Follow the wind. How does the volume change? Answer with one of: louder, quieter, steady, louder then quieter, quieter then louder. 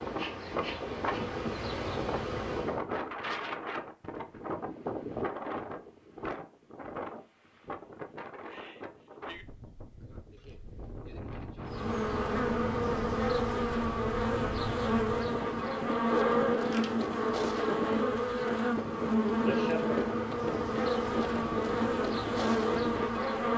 quieter then louder.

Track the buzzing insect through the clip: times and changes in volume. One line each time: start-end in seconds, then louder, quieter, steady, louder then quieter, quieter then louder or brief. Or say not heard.
0.0-2.8 brief
11.7-23.5 steady.